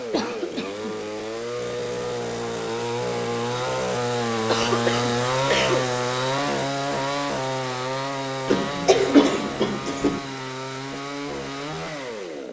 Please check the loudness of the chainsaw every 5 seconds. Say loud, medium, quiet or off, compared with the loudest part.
loud, loud, medium.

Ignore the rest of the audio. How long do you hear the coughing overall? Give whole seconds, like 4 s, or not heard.
4 s.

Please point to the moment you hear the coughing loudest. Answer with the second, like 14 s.
9 s.